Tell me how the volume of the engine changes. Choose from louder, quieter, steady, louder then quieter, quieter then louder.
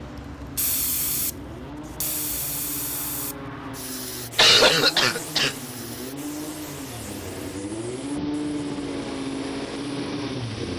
louder.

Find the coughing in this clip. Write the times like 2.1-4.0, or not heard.
4.3-5.5.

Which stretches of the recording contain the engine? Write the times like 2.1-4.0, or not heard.
0.0-10.7.